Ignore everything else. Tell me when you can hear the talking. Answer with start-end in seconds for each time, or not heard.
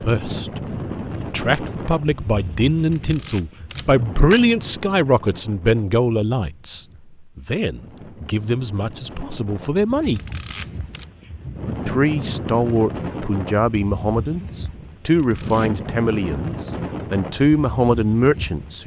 0.0-0.6, 1.2-10.2, 11.8-18.8.